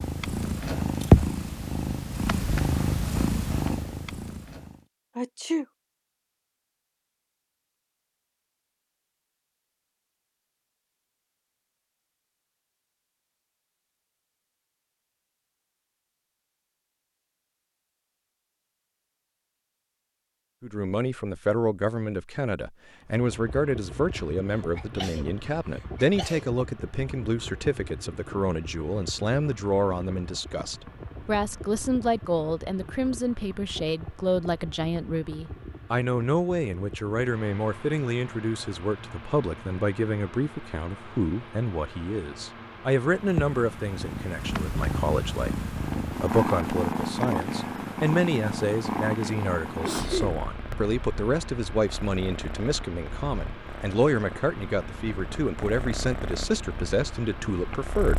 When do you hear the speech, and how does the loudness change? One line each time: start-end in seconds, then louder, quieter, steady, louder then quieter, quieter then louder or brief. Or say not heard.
20.6-58.1 steady.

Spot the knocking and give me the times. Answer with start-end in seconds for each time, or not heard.
not heard.